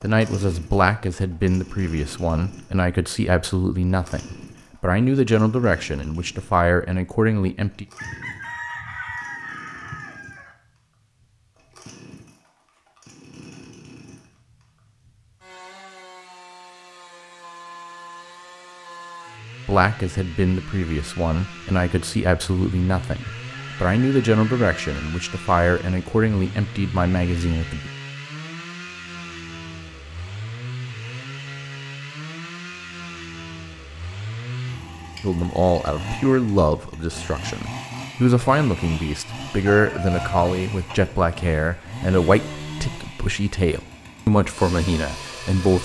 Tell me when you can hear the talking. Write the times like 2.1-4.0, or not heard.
0.0-7.8, 19.6-27.9, 35.2-45.8.